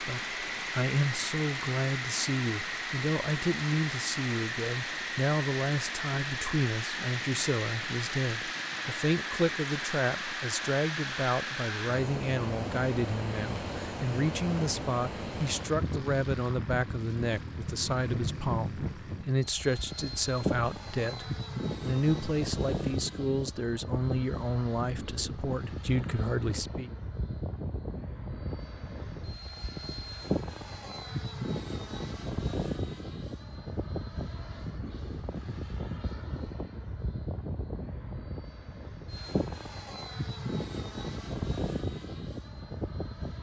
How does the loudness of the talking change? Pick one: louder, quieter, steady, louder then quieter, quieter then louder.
steady.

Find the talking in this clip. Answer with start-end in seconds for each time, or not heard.
0.0-26.9.